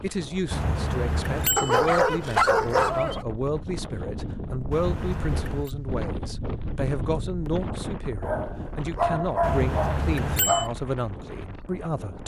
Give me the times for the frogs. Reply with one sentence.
The frogs can't be heard in this clip.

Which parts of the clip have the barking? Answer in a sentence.
You can hear the barking from 1.6 to 3.2 s and from 8.2 to 10.8 s.